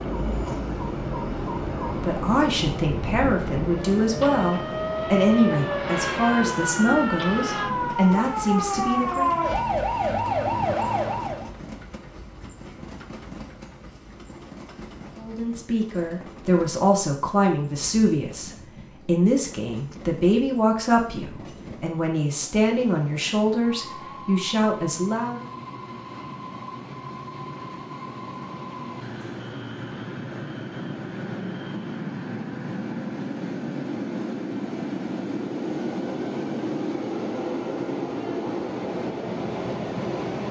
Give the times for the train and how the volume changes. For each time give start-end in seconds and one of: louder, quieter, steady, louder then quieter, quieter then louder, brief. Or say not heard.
0.0-40.4 quieter then louder.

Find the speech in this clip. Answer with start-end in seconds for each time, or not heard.
1.9-9.3, 15.2-25.4.